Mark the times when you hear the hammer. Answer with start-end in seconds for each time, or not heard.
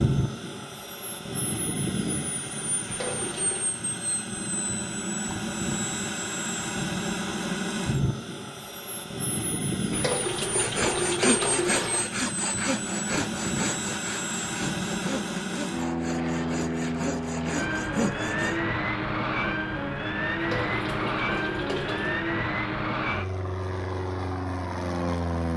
not heard.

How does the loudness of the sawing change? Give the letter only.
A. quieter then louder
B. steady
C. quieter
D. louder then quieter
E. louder
A.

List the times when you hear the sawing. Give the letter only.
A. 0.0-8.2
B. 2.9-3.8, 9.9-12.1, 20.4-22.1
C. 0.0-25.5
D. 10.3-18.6
D.